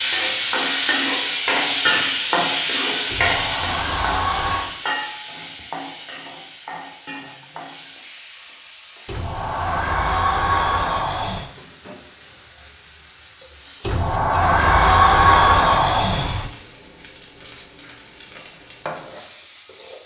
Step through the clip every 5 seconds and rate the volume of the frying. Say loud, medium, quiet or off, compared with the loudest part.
loud, quiet, quiet, quiet.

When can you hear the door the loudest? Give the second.
15 s.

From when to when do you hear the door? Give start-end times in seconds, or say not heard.
3.1-4.8, 9.1-11.5, 13.8-16.5.